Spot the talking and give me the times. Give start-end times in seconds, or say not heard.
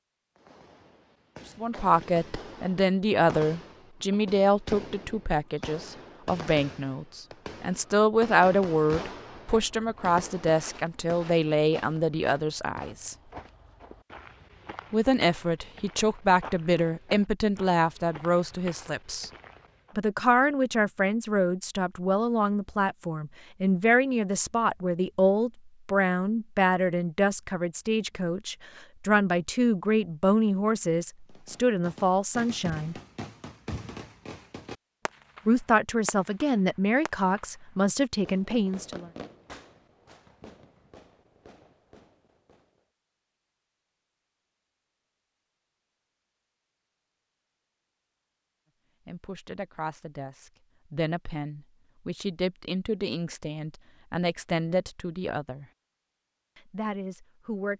1.4-13.2, 14.9-19.3, 19.9-33.0, 35.5-39.1, 49.0-55.6, 56.5-57.7.